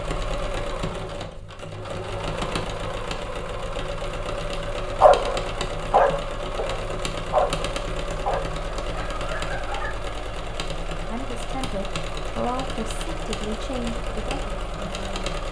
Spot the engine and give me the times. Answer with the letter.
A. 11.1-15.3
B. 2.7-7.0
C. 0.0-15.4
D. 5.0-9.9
C.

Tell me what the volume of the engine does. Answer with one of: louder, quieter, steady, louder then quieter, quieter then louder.
steady.